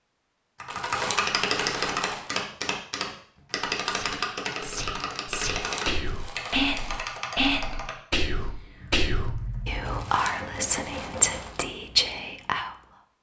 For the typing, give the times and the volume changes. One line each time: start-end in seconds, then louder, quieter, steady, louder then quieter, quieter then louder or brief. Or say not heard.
0.6-10.2 quieter.